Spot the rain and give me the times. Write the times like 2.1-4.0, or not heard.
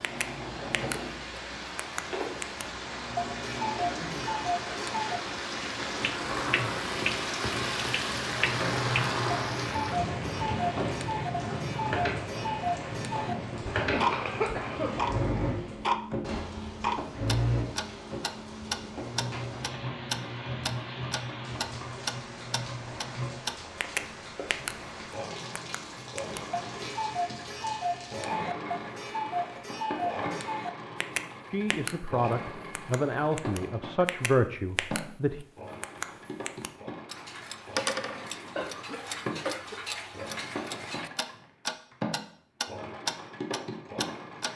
0.0-28.2.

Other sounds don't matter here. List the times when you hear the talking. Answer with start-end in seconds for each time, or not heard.
31.5-35.5.